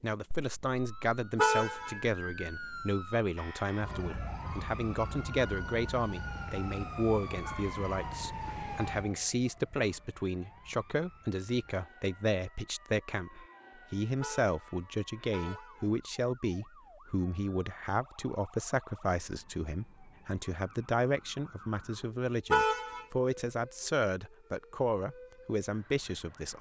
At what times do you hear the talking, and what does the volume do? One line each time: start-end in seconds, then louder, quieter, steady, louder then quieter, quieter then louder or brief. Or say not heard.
0.0-26.5 steady.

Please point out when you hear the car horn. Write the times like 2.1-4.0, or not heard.
1.4-1.9, 14.2-15.9, 22.5-23.1.